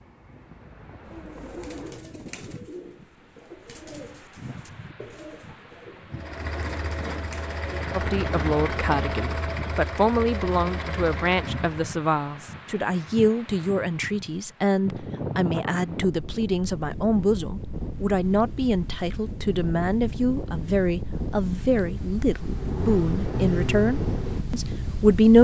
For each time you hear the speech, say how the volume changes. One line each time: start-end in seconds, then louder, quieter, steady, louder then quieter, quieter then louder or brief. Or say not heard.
8.0-25.3 steady.